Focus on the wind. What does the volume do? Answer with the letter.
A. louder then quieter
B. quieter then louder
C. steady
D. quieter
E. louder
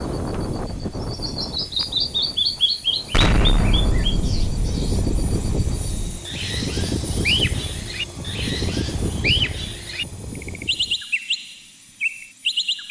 B.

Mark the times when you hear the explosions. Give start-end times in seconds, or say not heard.
3.1-6.2.